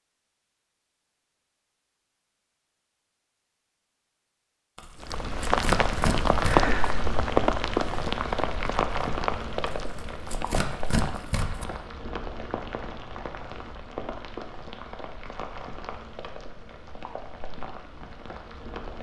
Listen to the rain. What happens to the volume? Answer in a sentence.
The loudness of the rain goes down.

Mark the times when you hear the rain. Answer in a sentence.
The rain can be heard from 5.0 to 18.9 s.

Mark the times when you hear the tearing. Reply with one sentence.
The tearing can be heard from 4.8 to 6.7 s and from 9.7 to 11.7 s.